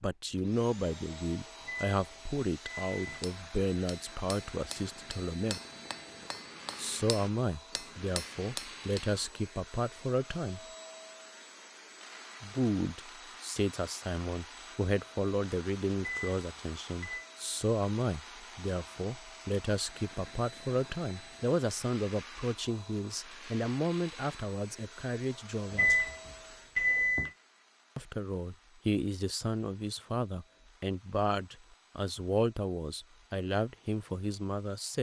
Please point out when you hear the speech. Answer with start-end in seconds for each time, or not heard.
0.0-5.6, 6.8-10.6, 12.4-25.9, 27.9-34.9.